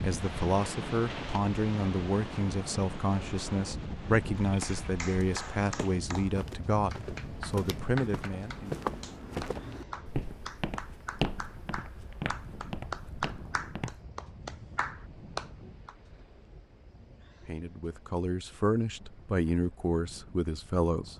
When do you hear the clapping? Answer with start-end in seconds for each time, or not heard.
4.6-15.9.